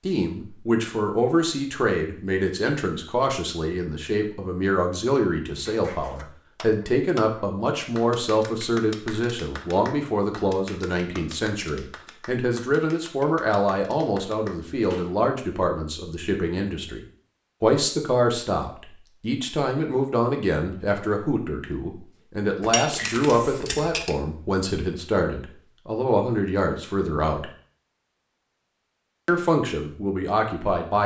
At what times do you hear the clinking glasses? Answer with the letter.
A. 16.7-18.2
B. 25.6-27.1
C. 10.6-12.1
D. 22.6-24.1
D.